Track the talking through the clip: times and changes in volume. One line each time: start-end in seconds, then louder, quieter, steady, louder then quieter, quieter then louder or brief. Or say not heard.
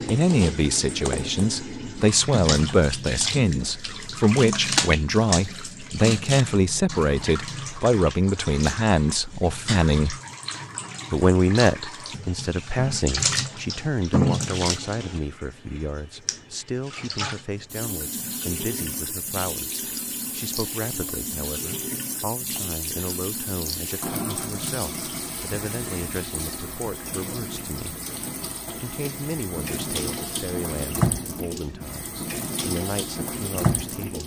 0.1-10.2 steady
11.1-27.9 quieter
28.7-34.2 steady.